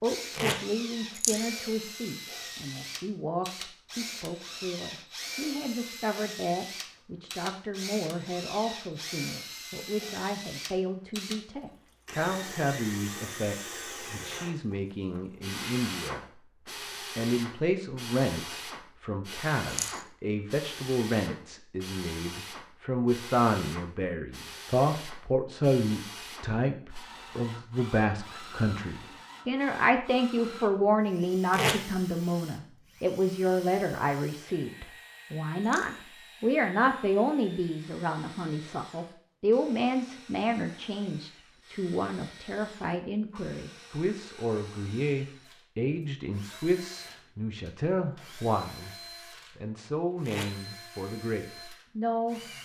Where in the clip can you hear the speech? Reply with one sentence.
You can hear the speech from 0.0 to 16.2 s, from 17.1 to 49.0 s and from 49.5 to 52.5 s.